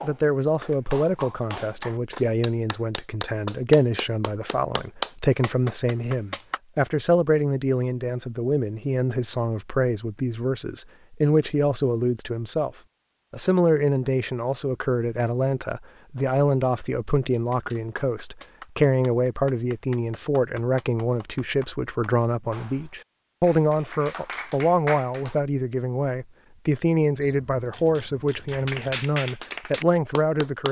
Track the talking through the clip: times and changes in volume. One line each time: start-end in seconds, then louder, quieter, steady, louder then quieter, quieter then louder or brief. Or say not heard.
0.0-12.7 steady
13.3-30.6 steady.